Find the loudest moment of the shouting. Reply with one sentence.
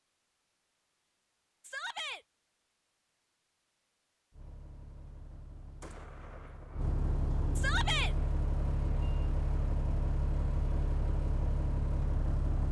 The loudest moment of the shouting is at 8 seconds.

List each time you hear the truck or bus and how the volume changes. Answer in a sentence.
You can hear the truck or bus from 4.3 to 12.6 s, getting louder.